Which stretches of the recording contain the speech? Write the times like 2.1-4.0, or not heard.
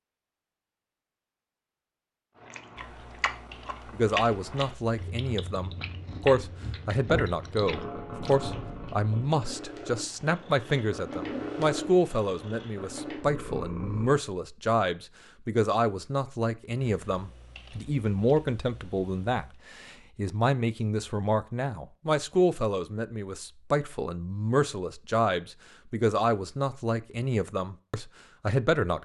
3.9-29.0.